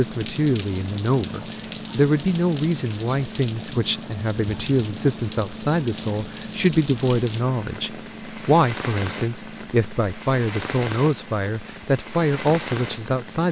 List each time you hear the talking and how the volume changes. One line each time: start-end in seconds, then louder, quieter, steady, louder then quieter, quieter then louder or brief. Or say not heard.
0.0-13.4 steady.